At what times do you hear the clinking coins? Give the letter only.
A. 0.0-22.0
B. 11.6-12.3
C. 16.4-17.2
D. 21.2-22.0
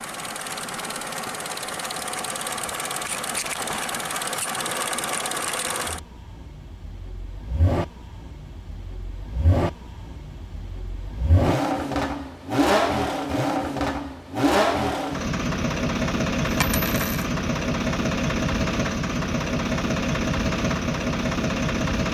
C.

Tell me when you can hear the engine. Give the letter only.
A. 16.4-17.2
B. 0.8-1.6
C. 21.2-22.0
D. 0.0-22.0
D.